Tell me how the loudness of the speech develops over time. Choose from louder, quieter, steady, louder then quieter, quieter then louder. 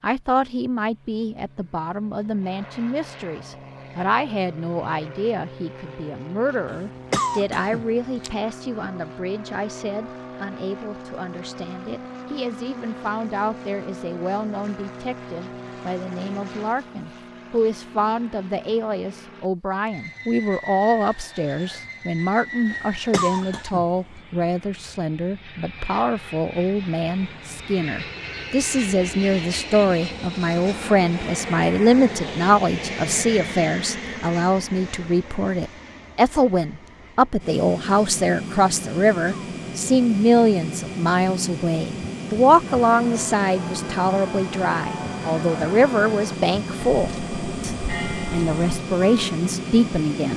louder.